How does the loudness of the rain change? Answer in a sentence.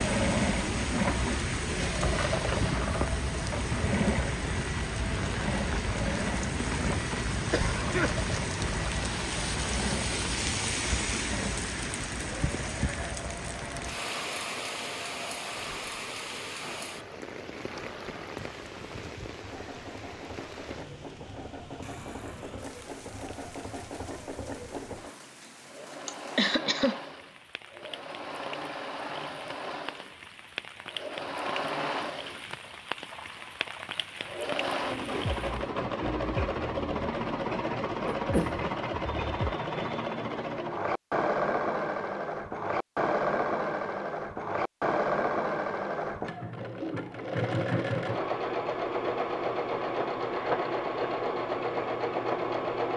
The loudness of the rain goes down, then up.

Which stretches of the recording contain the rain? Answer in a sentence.
You can hear the rain from 0.0 to 35.7 s.